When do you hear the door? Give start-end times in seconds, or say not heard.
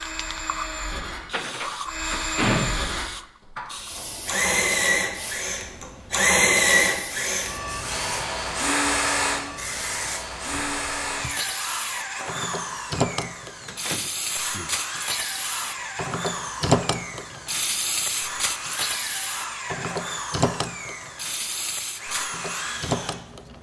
1.2-2.9, 13.7-14.7.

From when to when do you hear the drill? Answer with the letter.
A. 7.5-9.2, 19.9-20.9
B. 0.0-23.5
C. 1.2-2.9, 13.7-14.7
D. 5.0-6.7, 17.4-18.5
B.